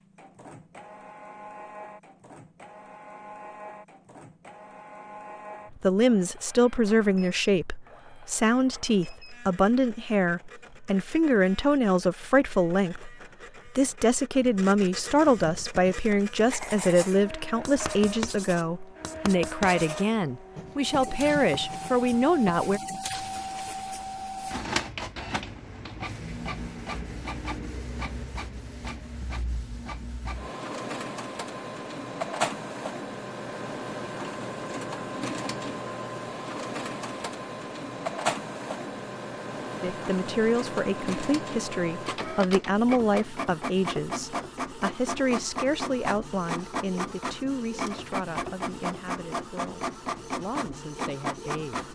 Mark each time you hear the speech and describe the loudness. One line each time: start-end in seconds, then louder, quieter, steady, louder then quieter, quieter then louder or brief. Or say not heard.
5.7-22.8 steady
39.8-51.9 quieter.